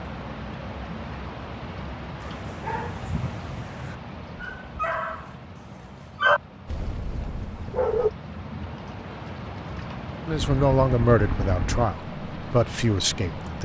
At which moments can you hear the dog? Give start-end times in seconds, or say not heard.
2.2-8.1.